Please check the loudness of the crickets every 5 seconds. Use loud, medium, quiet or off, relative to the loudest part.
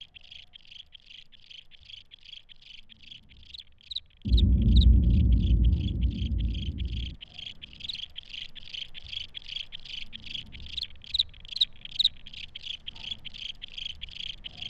medium, medium, loud.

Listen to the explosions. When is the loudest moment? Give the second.
5 s.